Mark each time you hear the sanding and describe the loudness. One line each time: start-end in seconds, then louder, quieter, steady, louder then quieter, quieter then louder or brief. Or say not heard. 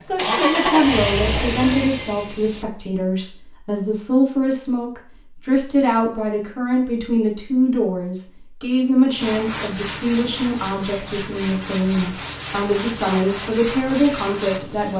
9.2-14.9 steady.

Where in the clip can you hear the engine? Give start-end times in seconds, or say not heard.
0.1-2.6.